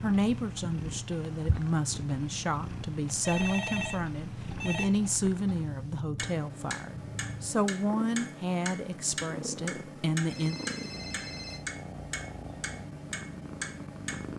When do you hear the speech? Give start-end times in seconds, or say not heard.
0.0-10.6.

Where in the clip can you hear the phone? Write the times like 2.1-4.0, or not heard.
3.2-4.8, 10.2-11.6.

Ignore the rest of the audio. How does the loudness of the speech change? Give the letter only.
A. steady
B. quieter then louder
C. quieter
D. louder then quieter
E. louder
A.